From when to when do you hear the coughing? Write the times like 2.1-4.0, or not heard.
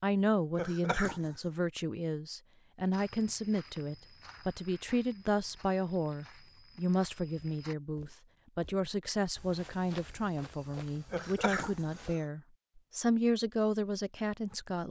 0.6-1.4, 11.1-12.2.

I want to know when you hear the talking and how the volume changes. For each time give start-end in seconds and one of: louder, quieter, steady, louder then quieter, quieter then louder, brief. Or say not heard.
0.0-14.8 steady.